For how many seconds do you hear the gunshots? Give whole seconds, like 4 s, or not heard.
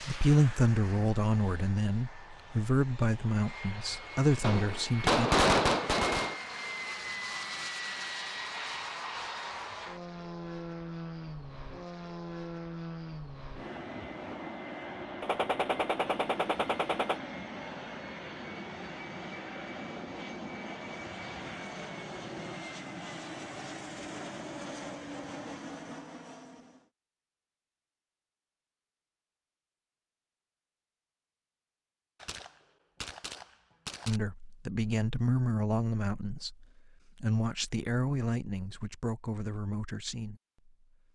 6 s.